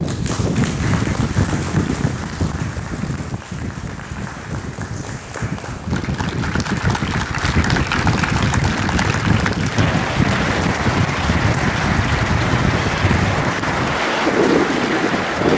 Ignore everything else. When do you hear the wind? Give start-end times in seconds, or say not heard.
0.0-15.5.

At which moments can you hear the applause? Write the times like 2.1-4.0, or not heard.
0.0-15.5.